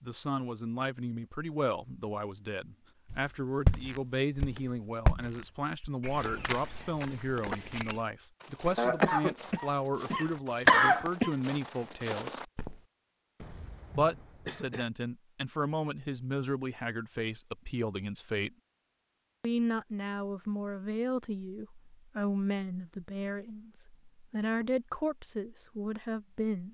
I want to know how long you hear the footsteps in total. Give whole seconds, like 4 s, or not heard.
10 s.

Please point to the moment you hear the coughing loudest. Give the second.
11 s.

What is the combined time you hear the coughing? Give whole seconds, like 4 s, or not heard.
4 s.